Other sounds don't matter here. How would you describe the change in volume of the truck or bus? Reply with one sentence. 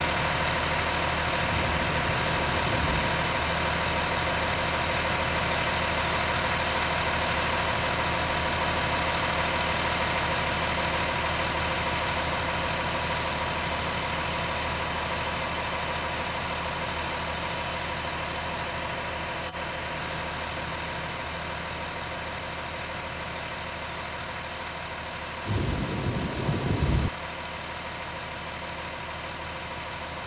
The loudness of the truck or bus goes down.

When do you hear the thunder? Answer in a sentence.
You can hear the thunder from 1.4 to 3.1 s and from 25.4 to 27.1 s.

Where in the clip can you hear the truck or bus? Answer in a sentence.
You can hear the truck or bus from 0.0 to 30.2 s.